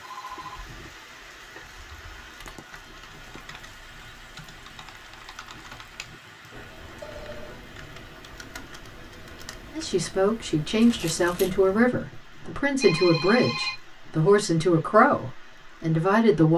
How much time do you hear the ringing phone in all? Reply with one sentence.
The ringing phone can be heard for 4 seconds in total.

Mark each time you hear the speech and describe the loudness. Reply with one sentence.
The speech can be heard from 9.8 to 16.5 s, at a steady volume.